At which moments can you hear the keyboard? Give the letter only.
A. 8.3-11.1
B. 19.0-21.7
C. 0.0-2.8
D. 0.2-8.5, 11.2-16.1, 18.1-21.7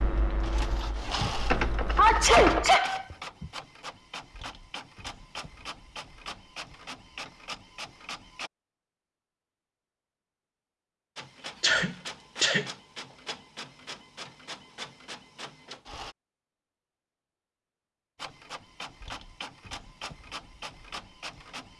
C.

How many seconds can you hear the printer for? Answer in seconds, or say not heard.
17 s.